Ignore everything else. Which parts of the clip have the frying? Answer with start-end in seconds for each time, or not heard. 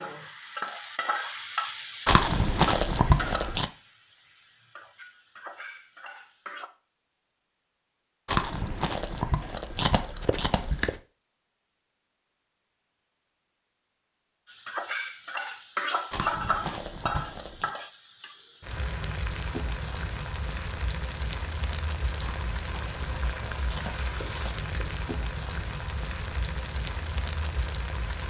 0.0-6.7, 14.4-28.2.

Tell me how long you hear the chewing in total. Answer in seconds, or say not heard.
9 s.